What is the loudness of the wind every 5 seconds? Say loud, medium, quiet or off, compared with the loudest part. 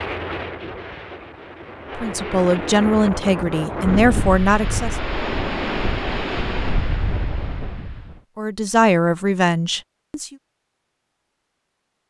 loud, loud, off.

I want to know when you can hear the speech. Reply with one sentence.
You can hear the speech from 1.9 to 5.0 s and from 8.3 to 10.3 s.